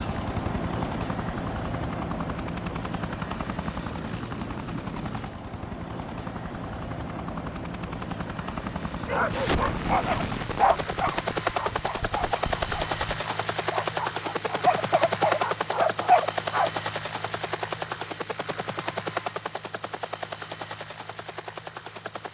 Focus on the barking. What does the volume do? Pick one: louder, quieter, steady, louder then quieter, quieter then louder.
quieter then louder.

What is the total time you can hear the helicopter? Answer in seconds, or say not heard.
22 s.